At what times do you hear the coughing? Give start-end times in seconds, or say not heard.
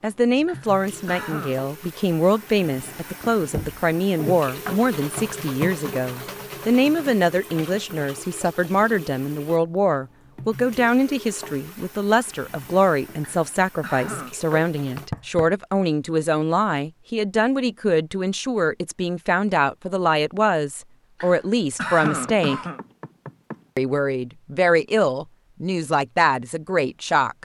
0.5-1.6, 13.2-14.3, 21.2-22.8.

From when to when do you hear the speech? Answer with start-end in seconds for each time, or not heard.
0.0-22.6, 23.8-27.4.